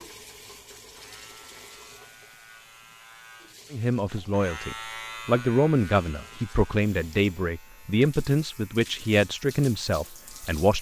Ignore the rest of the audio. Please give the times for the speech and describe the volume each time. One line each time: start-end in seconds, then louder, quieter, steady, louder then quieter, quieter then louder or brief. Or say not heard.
3.7-10.7 steady.